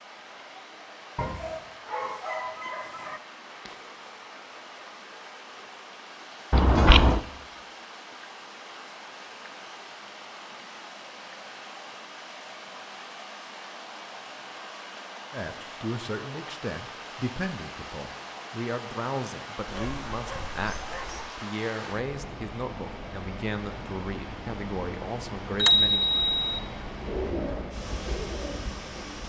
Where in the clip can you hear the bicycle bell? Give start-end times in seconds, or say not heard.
6.5-7.2, 25.6-26.6.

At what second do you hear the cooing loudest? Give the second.
27 s.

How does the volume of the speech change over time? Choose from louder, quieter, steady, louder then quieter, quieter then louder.
steady.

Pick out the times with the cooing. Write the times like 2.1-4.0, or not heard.
26.9-29.2.